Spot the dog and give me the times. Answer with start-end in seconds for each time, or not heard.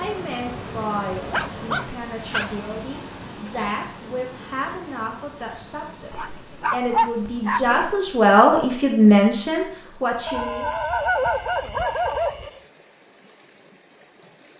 1.2-2.6, 6.1-8.0, 10.2-12.6.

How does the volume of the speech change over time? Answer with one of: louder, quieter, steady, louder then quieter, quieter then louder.
louder.